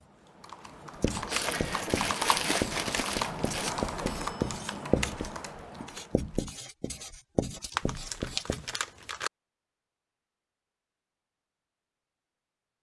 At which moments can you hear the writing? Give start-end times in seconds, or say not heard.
1.0-8.7.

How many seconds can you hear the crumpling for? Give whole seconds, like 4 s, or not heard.
4 s.